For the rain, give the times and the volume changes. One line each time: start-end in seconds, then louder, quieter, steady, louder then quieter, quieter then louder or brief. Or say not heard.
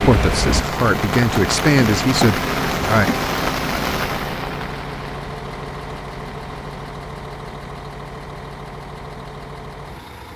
0.0-6.9 quieter.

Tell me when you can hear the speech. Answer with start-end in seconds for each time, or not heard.
0.0-3.1.